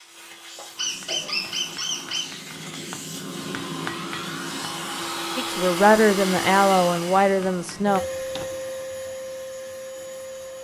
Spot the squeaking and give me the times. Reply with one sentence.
The squeaking can be heard from 0.8 to 2.2 s.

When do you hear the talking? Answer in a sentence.
The talking can be heard from 5.3 to 8.0 s.